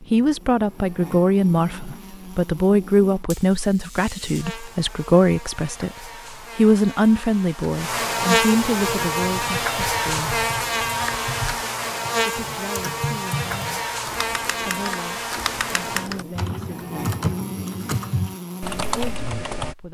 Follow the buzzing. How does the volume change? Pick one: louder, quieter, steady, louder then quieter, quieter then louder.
louder then quieter.